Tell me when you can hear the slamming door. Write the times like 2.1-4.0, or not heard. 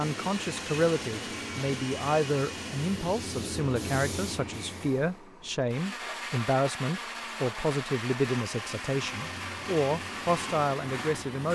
not heard.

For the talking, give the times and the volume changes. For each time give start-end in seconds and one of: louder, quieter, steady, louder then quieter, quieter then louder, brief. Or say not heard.
0.0-11.5 steady.